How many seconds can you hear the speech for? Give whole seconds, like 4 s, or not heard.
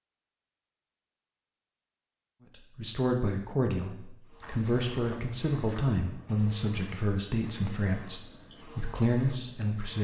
7 s.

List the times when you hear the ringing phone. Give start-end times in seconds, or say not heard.
not heard.